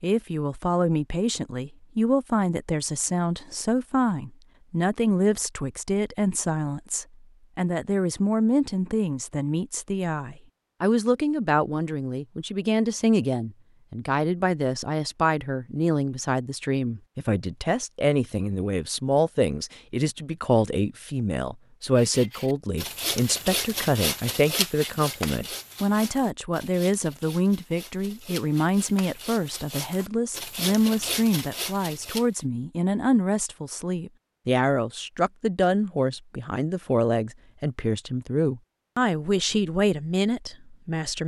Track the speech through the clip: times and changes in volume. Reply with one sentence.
You can hear the speech from 0.0 to 41.2 s, at a steady volume.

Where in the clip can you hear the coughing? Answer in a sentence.
The coughing can't be heard in this clip.